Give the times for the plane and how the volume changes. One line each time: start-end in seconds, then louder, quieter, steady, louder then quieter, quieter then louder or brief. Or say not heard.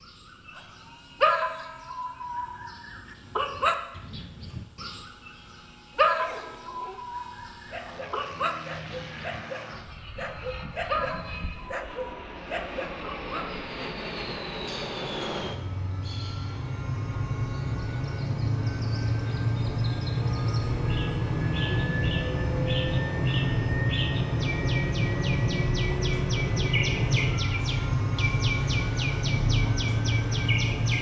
0.1-30.9 louder.